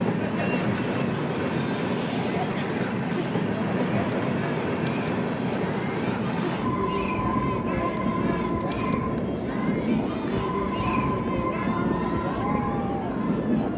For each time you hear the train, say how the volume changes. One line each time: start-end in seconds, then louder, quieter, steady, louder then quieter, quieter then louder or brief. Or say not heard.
0.0-13.7 steady.